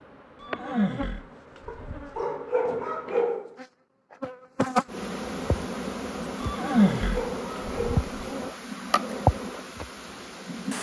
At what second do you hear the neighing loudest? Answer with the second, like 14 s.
7 s.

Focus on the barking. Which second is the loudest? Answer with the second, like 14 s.
3 s.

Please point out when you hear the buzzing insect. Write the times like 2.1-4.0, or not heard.
0.0-10.7.